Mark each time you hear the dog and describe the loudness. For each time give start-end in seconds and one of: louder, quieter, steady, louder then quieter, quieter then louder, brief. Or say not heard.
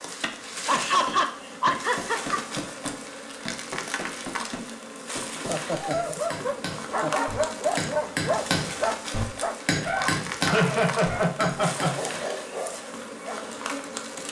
5.7-13.6 quieter.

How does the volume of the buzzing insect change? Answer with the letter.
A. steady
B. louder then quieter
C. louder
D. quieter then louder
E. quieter
A.